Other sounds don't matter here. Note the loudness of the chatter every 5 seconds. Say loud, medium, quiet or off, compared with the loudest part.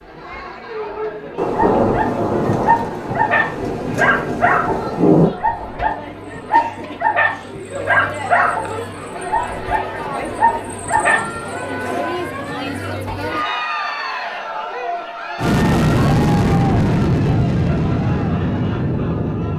medium, medium, loud, medium.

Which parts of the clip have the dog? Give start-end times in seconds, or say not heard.
0.8-11.3.